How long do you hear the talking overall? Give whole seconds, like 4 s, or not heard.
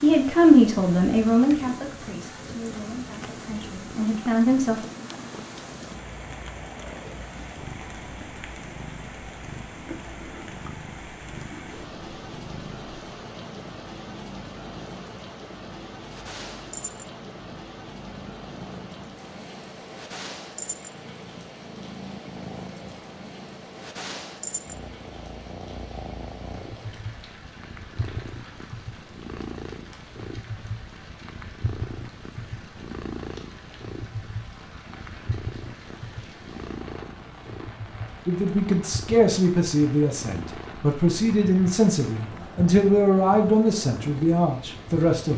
12 s.